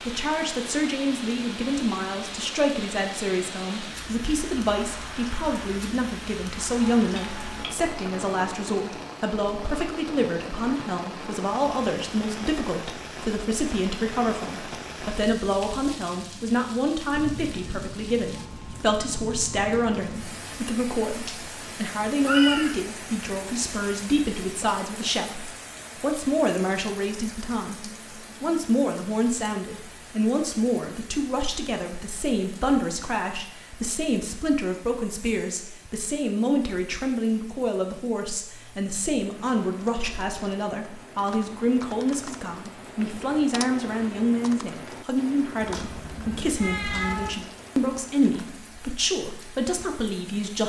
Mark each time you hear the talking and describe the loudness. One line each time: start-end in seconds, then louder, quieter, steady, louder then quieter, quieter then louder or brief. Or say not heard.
0.1-50.6 steady.